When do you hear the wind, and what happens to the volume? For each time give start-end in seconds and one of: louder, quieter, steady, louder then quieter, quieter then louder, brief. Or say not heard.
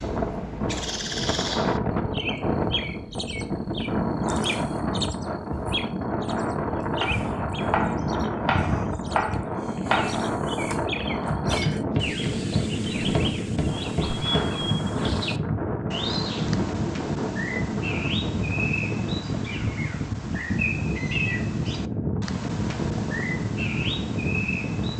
0.0-24.9 steady.